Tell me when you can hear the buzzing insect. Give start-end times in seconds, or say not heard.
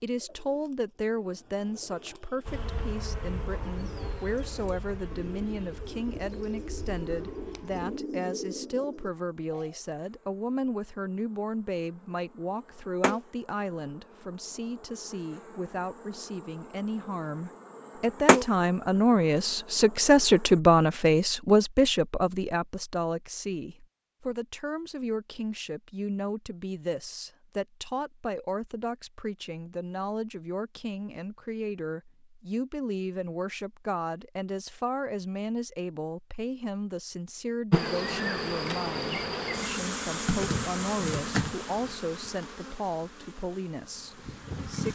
2.5-20.6, 37.7-44.9.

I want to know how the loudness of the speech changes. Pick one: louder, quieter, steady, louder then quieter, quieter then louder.
louder then quieter.